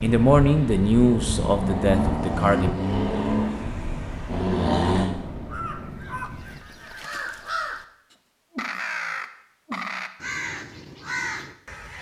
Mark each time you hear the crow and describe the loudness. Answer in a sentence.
You can hear the crow from 5.5 to 11.9 s, getting louder.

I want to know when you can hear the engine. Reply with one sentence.
The engine can be heard from 0.0 to 5.1 s.